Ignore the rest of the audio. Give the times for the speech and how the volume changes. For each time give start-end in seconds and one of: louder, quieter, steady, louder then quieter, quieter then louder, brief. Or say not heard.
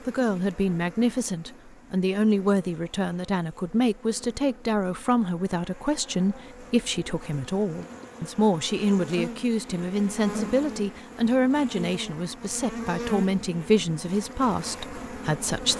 0.1-15.7 steady.